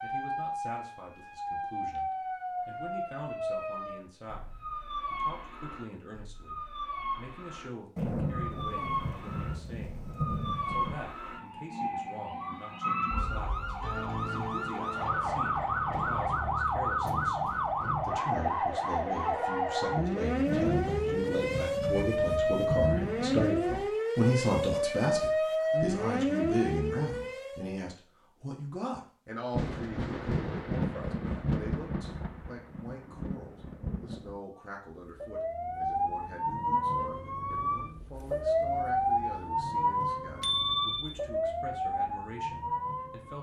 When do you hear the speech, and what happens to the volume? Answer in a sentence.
You can hear the speech from 0.0 to 43.3 s, getting louder then quieter.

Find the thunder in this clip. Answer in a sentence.
The thunder can be heard from 8.0 to 11.0 s, from 20.4 to 23.8 s and from 29.5 to 34.4 s.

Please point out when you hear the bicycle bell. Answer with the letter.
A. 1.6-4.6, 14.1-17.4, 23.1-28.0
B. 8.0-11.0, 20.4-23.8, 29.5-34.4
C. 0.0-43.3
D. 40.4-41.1
D.